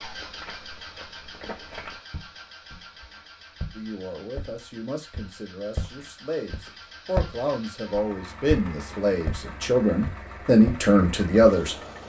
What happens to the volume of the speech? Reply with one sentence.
The loudness of the speech goes up.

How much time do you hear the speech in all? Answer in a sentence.
You can hear the speech for 8 seconds altogether.